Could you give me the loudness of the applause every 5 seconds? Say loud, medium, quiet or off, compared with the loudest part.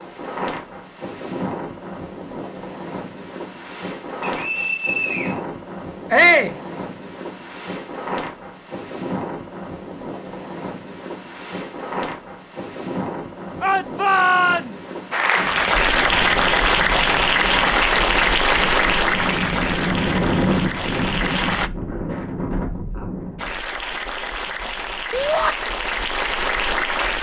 off, off, off, loud, medium, medium.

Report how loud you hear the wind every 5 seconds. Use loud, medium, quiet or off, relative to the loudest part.
medium, medium, medium, medium, loud, off.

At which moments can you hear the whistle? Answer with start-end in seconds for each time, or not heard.
4.2-5.4.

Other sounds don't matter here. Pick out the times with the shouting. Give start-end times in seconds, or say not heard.
6.1-6.5, 13.6-14.9, 25.1-25.6.